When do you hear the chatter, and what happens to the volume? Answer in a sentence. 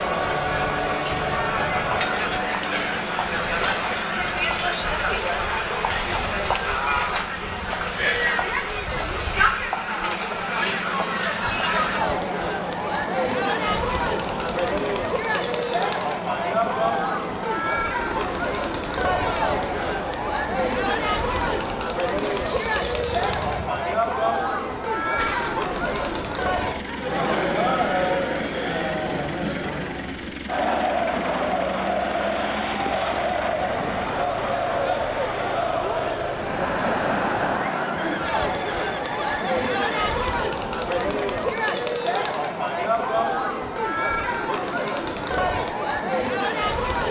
The chatter can be heard from 0.0 to 47.0 s, at a steady volume.